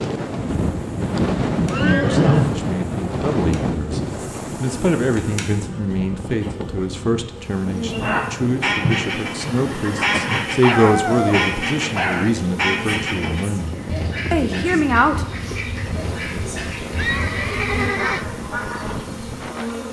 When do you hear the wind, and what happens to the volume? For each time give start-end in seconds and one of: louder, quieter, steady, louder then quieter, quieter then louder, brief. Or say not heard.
0.0-19.8 quieter.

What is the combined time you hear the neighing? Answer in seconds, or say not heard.
4 s.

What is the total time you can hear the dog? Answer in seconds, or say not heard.
2 s.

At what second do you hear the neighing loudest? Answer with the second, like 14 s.
2 s.